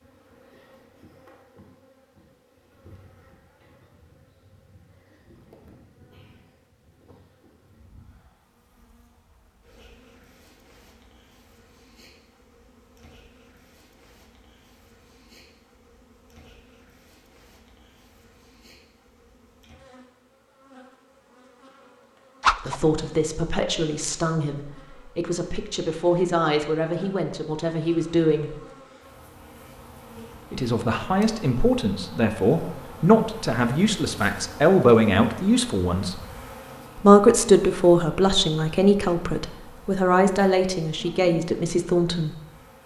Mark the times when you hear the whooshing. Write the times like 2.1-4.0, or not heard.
22.4-22.8.